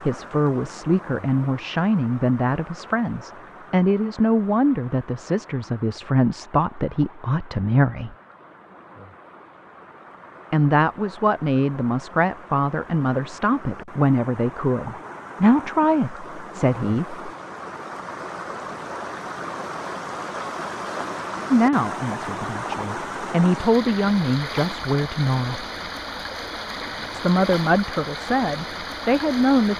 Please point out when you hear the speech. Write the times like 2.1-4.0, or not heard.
0.1-8.2, 10.5-17.2, 21.5-25.6, 27.1-29.7.